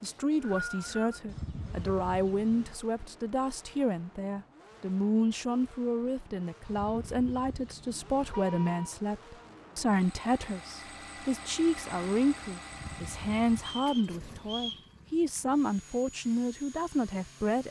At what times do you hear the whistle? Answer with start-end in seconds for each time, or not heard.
0.0-1.1, 13.6-14.8.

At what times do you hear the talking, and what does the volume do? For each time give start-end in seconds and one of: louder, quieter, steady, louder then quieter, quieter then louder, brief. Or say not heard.
0.0-17.6 steady.